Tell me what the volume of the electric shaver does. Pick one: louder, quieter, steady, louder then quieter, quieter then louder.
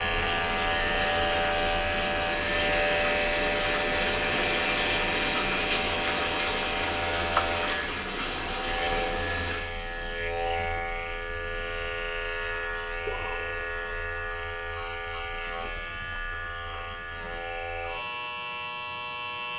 quieter.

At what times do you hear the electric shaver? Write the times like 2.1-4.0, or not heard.
0.0-19.5.